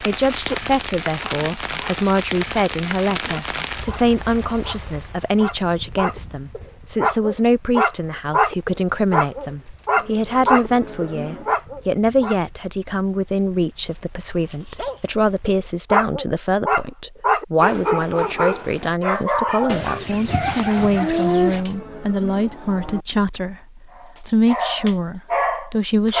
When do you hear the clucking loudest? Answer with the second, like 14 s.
21 s.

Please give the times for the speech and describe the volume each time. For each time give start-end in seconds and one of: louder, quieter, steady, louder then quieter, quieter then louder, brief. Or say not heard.
0.0-26.1 steady.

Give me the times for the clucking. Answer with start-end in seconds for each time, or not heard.
19.6-21.6.